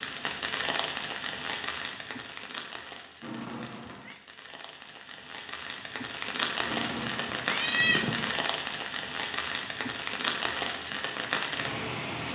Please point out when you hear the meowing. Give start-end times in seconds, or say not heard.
3.2-4.2, 6.7-8.3.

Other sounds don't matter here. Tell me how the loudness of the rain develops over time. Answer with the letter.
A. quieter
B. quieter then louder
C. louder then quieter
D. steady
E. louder
B.